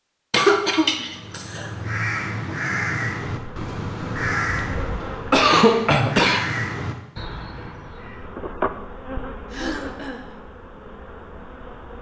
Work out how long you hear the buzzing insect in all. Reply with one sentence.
The buzzing insect can be heard for 6 seconds in total.